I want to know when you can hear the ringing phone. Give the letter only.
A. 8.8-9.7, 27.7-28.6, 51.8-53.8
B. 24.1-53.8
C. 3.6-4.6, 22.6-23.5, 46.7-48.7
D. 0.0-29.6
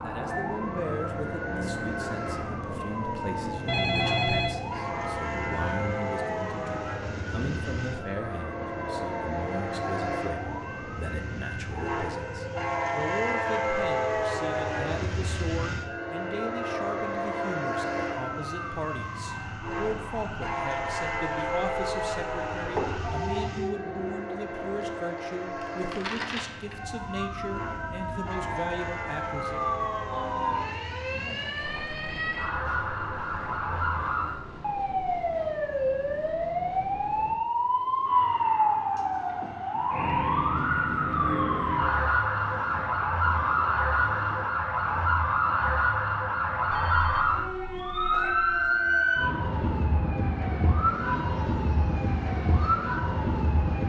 C.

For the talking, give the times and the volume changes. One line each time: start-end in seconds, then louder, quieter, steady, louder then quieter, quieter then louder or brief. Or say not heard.
0.0-29.6 steady.